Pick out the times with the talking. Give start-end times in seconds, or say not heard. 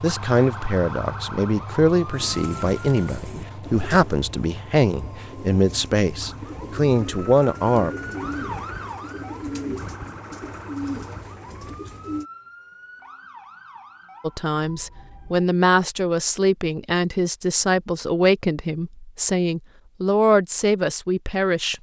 0.0-8.0, 14.2-21.7.